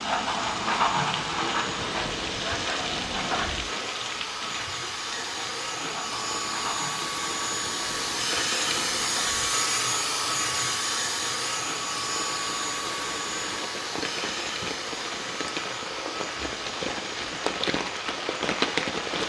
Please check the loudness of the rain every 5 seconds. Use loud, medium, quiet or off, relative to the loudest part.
loud, medium, medium, loud.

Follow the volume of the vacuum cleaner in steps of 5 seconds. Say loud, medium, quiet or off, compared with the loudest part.
medium, loud, loud, medium.